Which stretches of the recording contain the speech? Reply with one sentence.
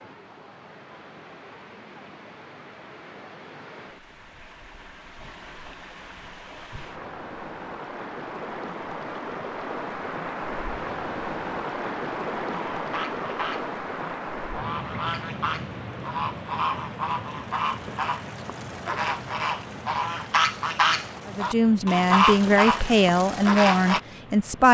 The speech can be heard from 21.2 to 24.7 s.